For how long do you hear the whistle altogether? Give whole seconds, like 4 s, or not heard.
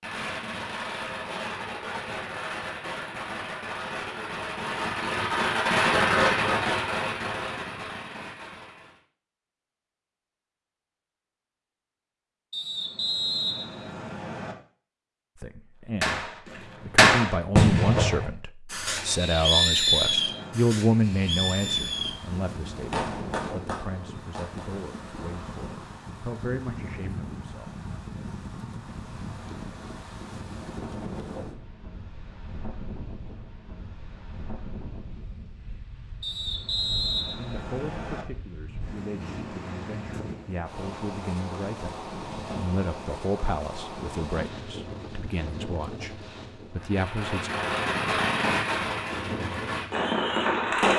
6 s.